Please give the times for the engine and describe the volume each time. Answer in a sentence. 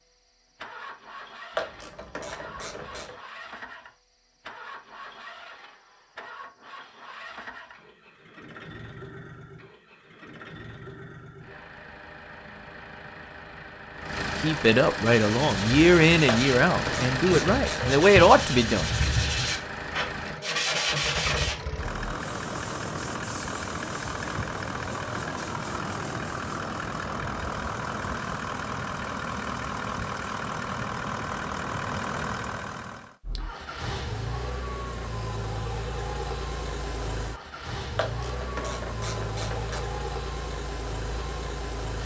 The engine can be heard from 0.0 to 42.0 s, getting louder.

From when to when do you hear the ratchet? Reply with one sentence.
The ratchet can be heard from 1.6 to 3.1 s, from 16.2 to 18.1 s and from 38.0 to 39.8 s.